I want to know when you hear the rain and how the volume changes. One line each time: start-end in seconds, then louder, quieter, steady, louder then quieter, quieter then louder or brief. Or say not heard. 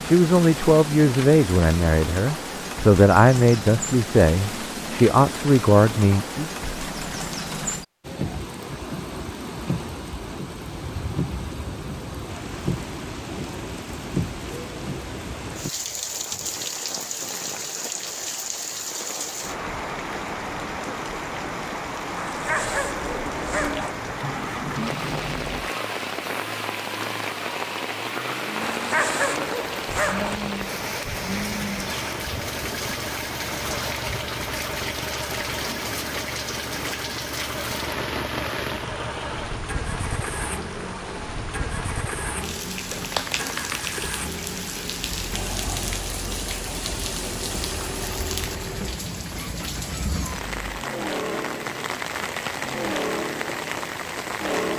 0.0-54.7 steady.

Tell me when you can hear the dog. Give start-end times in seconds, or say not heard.
22.2-23.9, 28.6-30.4.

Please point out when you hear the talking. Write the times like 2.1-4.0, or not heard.
0.0-6.5.